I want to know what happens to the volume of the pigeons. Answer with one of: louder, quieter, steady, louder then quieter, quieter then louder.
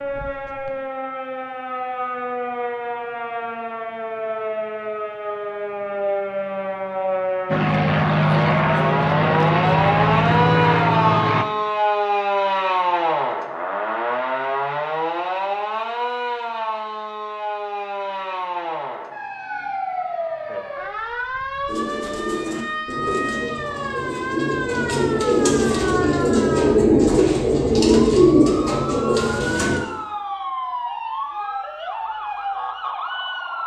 louder.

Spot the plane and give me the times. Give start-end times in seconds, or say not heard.
7.5-11.4.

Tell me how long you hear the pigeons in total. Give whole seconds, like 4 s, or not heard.
8 s.